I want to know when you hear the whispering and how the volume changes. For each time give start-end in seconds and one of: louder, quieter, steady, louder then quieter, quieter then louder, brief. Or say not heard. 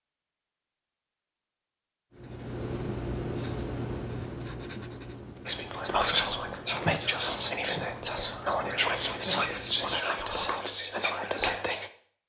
5.5-11.9 steady.